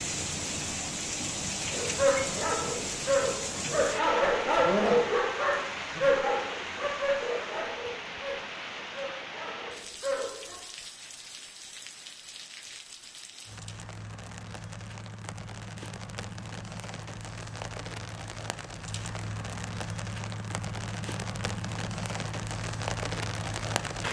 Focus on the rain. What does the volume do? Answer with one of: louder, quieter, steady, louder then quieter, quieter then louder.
quieter then louder.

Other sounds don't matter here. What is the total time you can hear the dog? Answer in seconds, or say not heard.
9 s.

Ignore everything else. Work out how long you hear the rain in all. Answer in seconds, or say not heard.
24 s.